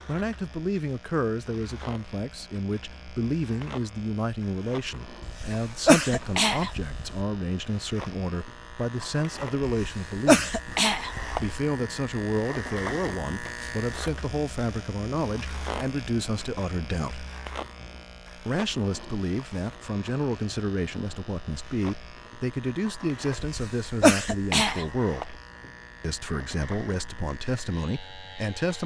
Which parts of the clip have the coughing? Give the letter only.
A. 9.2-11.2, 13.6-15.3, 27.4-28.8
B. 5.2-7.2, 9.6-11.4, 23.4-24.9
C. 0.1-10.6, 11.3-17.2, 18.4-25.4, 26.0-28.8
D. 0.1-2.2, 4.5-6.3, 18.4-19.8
B.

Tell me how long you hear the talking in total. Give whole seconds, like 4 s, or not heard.
26 s.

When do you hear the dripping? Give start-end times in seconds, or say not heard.
not heard.